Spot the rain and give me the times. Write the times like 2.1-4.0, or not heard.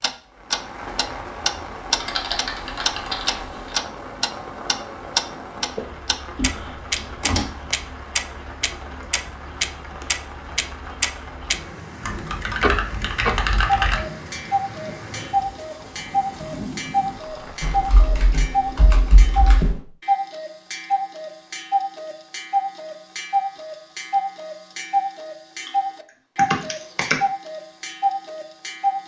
0.0-17.9.